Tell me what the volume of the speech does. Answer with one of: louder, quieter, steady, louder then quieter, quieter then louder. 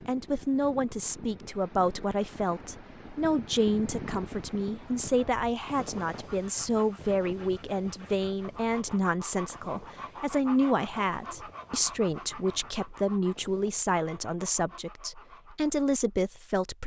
steady.